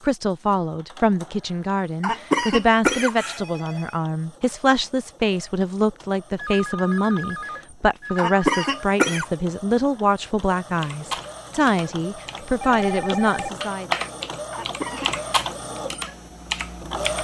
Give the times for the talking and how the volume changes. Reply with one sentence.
The talking can be heard from 0.0 to 13.9 s, at a steady volume.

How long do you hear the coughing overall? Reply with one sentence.
You can hear the coughing for 3 seconds altogether.